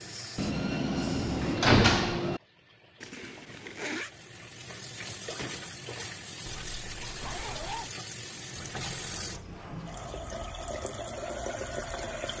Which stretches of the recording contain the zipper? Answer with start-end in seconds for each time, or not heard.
3.0-4.1, 6.6-8.0.